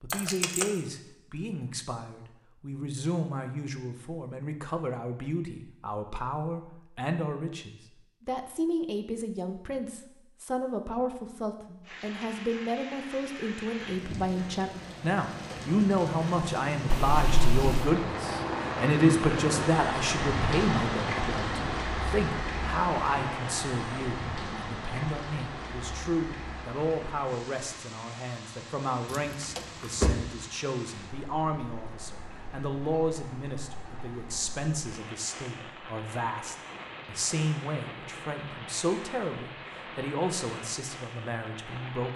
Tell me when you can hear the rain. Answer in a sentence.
The rain can be heard from 11.8 to 42.1 s.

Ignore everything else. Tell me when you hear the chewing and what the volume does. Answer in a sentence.
You can't hear the chewing here.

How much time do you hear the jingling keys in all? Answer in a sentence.
The jingling keys can be heard for 3 seconds in total.